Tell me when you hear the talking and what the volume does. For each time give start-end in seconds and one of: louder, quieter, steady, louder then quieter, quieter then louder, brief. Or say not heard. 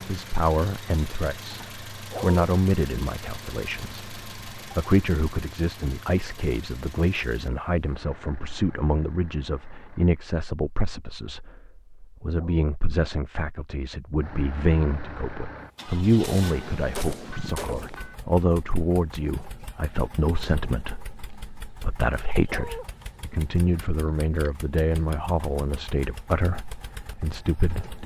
0.1-28.0 steady.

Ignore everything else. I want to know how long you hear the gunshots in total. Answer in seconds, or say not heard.
2 s.